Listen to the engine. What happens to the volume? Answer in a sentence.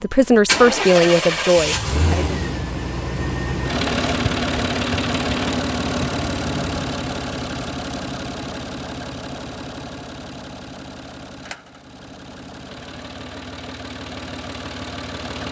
The loudness of the engine goes down.